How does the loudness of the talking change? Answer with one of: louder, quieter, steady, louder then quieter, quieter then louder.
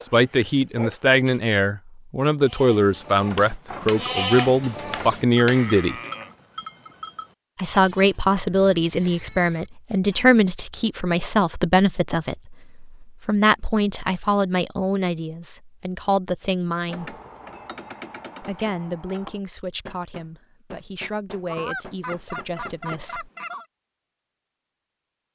quieter.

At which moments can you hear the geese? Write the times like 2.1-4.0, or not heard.
21.4-23.6.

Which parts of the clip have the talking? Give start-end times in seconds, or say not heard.
0.0-6.0, 7.5-17.1, 18.4-23.3.